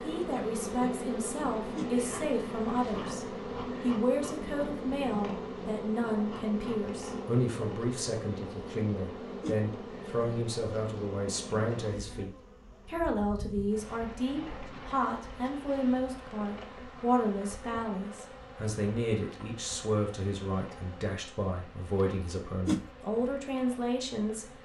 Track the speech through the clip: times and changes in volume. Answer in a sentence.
You can hear the speech from 0.0 to 24.5 s, at a steady volume.